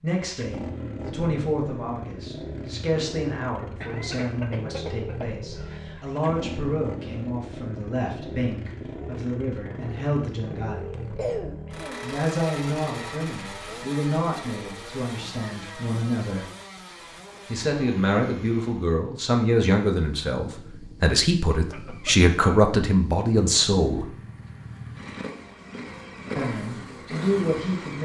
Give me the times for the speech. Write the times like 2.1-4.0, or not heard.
0.0-10.8, 12.0-16.4, 17.5-24.1, 26.4-27.9.